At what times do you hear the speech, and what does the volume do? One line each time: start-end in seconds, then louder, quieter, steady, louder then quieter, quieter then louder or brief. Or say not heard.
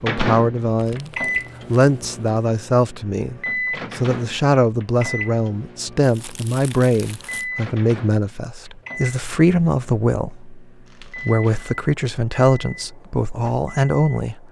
0.0-1.1 brief
1.7-14.4 steady.